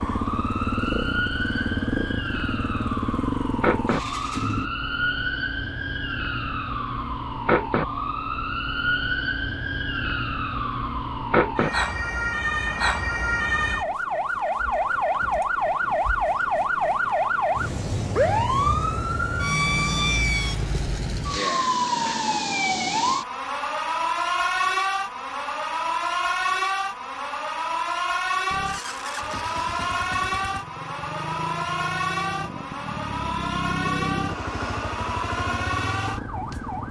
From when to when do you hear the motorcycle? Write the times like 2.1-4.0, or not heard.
0.0-4.7, 28.4-36.8.